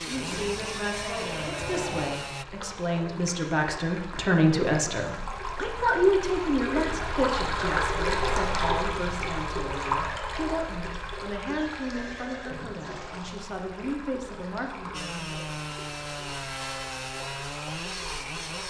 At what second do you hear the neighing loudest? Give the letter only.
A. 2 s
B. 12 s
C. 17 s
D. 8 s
A.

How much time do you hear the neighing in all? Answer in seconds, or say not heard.
4 s.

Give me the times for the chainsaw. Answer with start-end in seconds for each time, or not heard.
0.0-2.5, 14.9-18.6.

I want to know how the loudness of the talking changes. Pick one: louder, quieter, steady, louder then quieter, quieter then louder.
louder then quieter.